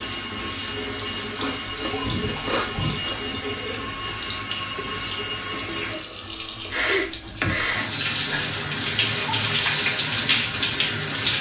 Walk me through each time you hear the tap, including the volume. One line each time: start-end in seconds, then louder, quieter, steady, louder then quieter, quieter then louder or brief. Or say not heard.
0.0-11.3 louder.